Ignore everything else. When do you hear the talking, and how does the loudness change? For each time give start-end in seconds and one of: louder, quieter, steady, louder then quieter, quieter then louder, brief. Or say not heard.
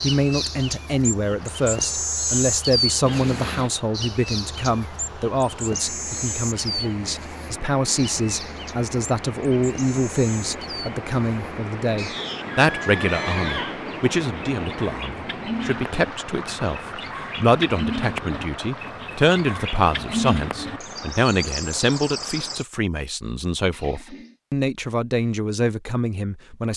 0.0-26.7 steady.